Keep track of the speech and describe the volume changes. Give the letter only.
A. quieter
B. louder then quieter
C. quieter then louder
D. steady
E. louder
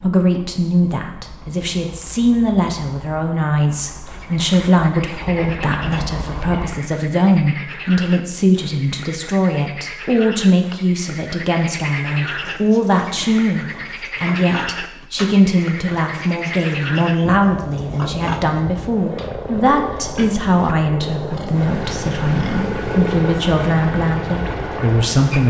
D.